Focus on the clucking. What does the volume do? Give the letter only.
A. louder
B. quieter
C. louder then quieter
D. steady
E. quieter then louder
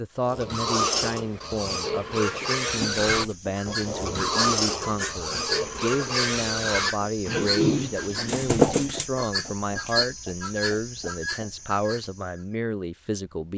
C.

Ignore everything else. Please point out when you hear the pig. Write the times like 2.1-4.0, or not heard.
0.2-8.7.